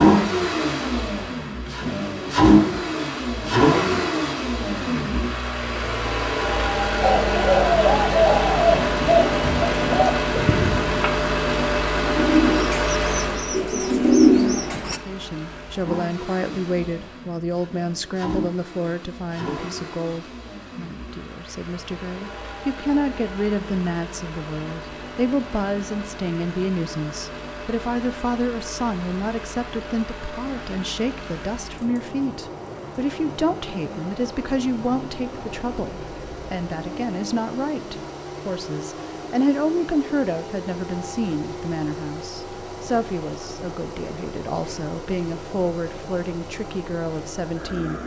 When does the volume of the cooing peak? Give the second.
14 s.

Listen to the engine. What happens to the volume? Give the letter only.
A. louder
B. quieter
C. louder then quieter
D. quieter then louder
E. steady
B.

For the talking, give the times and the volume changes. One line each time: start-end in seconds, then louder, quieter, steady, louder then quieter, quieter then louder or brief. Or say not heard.
14.9-48.0 steady.